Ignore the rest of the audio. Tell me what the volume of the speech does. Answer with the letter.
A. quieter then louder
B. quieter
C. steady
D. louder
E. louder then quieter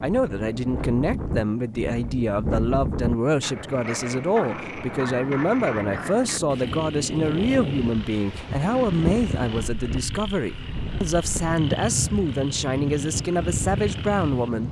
C.